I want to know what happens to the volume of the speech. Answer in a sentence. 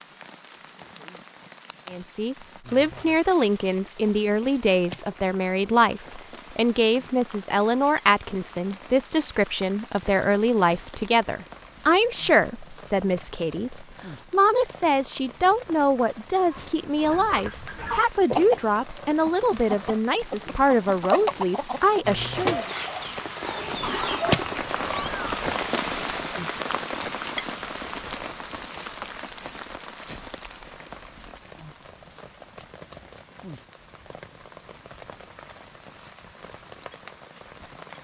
The loudness of the speech stays about the same.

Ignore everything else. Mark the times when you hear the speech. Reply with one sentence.
The speech can be heard from 1.9 to 22.6 s.